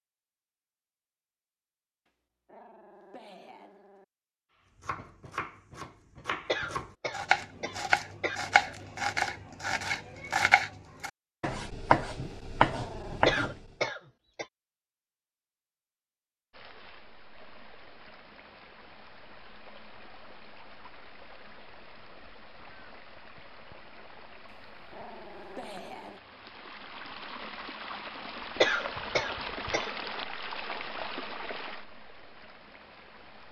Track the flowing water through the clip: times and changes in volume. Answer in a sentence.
You can hear the flowing water from 16.5 to 33.4 s, getting louder.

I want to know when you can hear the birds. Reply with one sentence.
The birds can't be heard in this clip.